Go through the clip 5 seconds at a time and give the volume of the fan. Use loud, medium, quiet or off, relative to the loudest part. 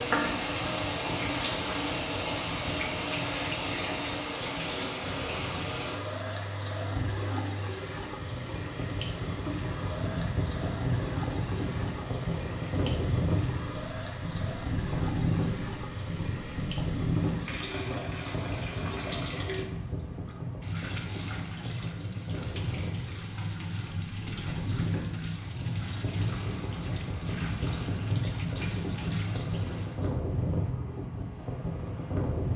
medium, medium, loud, loud, medium, loud, loud.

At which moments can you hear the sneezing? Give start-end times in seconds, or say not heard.
not heard.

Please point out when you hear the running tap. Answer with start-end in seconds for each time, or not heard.
0.0-30.1.